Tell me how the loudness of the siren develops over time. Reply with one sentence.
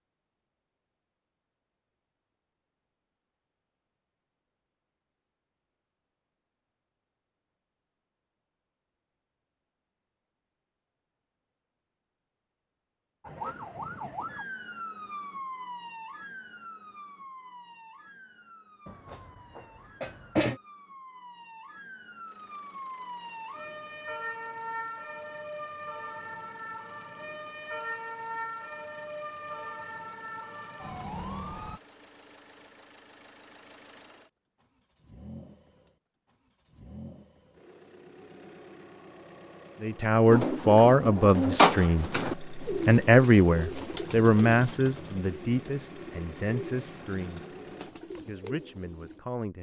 The loudness of the siren goes down, then up.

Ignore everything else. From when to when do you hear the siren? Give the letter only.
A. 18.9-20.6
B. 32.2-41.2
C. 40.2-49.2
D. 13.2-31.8
D.